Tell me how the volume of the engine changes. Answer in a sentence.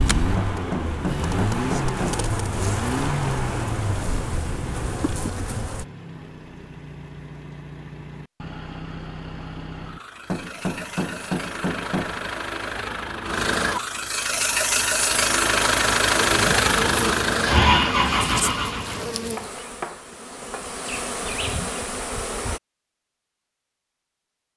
The loudness of the engine goes down, then up.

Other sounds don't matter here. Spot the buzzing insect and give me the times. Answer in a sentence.
You can hear the buzzing insect from 0.0 to 5.8 s and from 16.1 to 22.6 s.